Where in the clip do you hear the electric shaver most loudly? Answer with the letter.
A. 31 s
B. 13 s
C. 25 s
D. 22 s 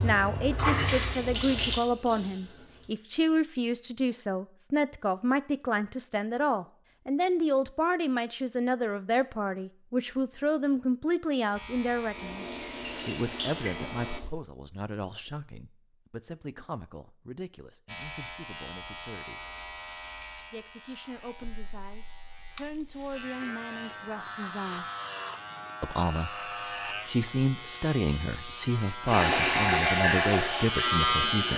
A.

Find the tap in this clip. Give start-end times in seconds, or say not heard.
0.0-3.0, 12.1-14.3, 29.1-31.5.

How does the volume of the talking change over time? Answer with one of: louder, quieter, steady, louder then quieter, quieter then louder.
quieter then louder.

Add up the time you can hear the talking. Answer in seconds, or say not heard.
29 s.